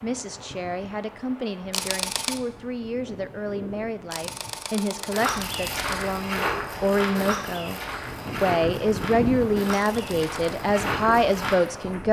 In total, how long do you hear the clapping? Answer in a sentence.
The clapping can't be heard in this clip.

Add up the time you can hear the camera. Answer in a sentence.
You can hear the camera for 3 seconds altogether.